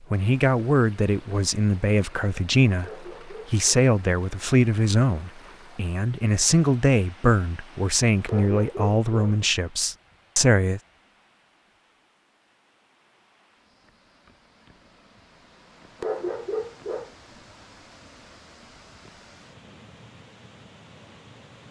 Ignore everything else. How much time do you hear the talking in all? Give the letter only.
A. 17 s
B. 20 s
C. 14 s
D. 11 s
D.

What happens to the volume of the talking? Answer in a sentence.
The volume of the talking stays about the same.